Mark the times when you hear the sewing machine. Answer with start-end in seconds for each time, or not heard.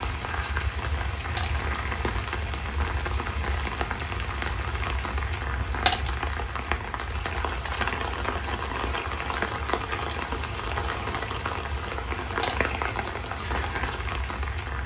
not heard.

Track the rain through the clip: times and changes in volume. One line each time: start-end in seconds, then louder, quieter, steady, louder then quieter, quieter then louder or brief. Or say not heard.
0.0-14.8 steady.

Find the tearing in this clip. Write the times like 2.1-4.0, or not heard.
1.5-2.1.